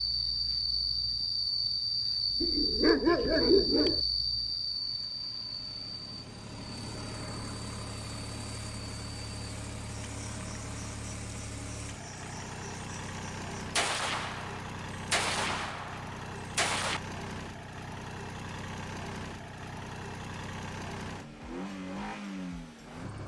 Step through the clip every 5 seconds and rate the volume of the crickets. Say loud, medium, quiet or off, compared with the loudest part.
loud, quiet, quiet, off, off.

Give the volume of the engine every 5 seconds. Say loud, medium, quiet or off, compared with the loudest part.
quiet, loud, loud, loud, loud.